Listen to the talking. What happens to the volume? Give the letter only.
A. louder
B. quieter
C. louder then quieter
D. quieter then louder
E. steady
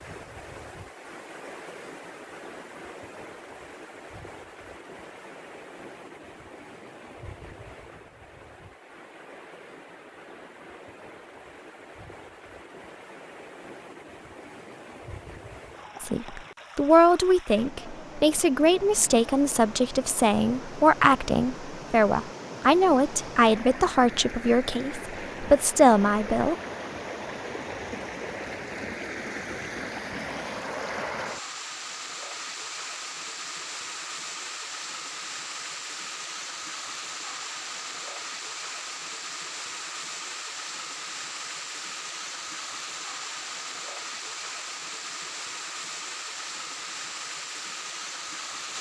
E.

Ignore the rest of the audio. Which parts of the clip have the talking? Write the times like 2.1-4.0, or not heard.
16.0-26.6.